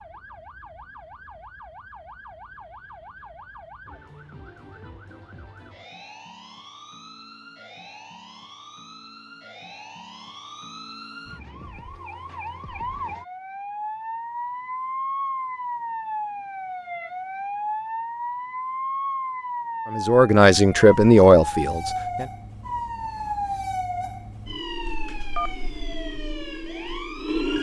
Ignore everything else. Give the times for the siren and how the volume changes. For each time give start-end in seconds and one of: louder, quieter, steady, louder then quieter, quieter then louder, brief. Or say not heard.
0.0-27.5 louder.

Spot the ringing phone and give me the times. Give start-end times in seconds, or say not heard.
24.9-25.9.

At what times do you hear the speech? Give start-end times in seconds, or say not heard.
19.9-22.2.